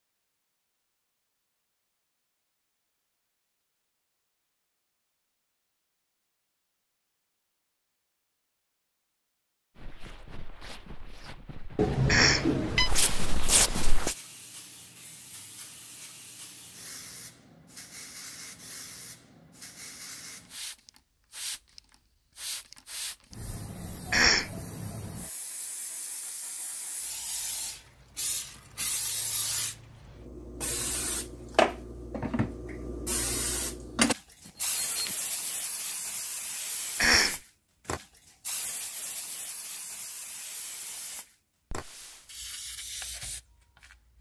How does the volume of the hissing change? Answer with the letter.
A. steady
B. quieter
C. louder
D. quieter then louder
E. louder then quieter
E.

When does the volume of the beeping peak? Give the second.
12 s.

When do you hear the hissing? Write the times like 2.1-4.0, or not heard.
13.9-44.1.